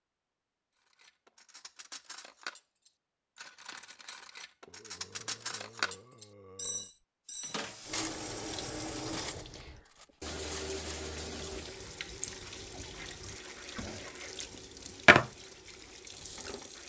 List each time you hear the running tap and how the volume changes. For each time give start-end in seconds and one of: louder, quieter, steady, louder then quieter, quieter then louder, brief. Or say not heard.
7.3-16.8 quieter.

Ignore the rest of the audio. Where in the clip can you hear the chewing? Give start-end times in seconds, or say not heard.
11.2-14.4, 15.1-16.5.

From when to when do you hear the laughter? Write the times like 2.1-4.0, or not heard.
not heard.